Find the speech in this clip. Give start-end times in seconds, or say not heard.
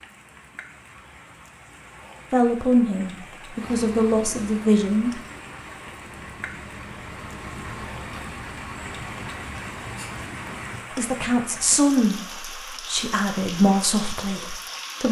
2.3-5.2, 10.9-15.0.